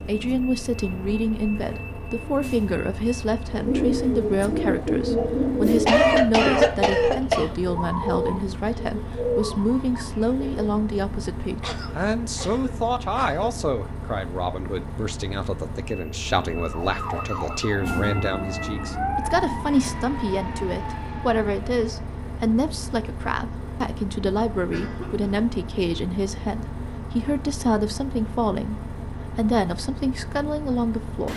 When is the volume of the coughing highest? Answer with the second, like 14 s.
6 s.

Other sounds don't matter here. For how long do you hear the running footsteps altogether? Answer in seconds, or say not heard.
not heard.